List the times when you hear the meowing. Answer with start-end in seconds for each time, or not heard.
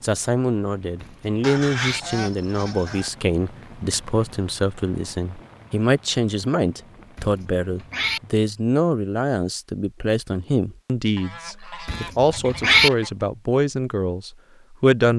1.0-2.0, 7.2-8.2, 11.8-12.9.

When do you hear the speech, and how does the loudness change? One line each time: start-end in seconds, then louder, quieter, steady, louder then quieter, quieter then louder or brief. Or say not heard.
0.0-15.1 steady.